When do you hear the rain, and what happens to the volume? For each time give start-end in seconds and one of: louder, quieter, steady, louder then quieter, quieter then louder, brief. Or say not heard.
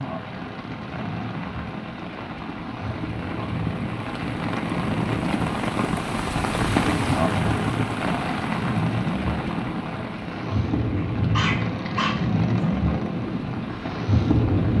0.0-14.7 louder then quieter.